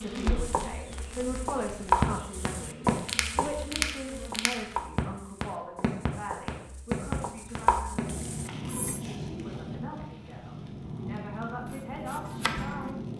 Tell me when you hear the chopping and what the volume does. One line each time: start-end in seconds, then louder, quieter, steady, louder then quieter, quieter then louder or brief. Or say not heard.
0.3-9.0 quieter then louder
11.6-12.9 brief.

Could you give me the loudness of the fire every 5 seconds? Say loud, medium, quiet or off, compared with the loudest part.
loud, loud, medium.